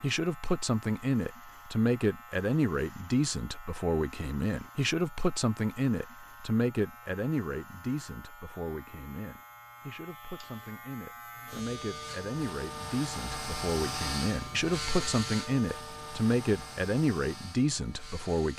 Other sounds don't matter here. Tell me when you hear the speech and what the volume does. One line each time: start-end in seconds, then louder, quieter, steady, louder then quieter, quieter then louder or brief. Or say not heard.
0.0-18.5 quieter then louder.